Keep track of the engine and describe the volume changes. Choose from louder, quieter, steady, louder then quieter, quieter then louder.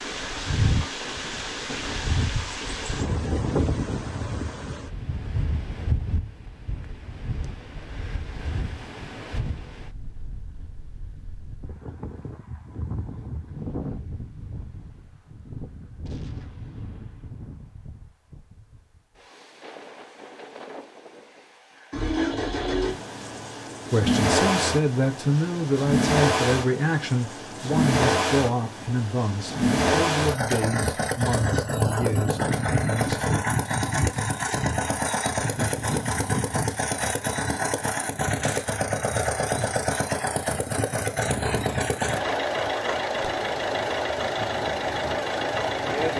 steady.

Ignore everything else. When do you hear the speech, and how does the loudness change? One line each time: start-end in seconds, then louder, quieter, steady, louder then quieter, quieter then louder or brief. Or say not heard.
23.9-33.2 quieter.